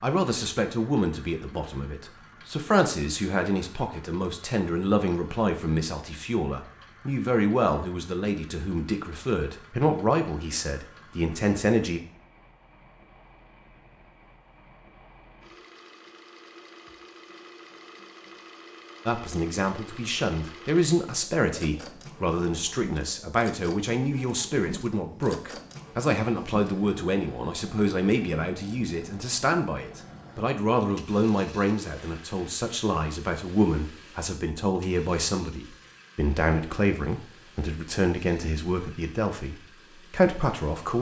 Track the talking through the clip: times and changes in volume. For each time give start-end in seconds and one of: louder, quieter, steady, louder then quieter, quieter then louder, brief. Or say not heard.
0.0-12.0 steady
19.1-40.9 steady.